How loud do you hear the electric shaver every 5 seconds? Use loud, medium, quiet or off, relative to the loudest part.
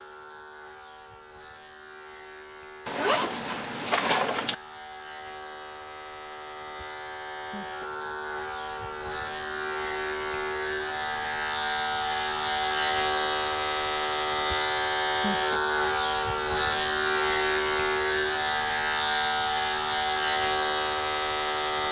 quiet, medium, loud, loud, loud.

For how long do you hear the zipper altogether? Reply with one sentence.
The zipper can be heard for 2 seconds in total.